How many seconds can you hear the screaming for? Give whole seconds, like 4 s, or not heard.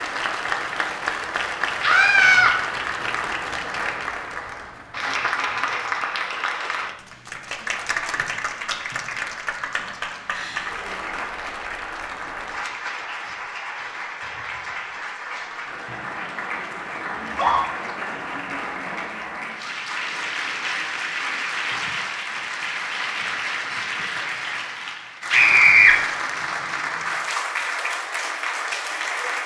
2 s.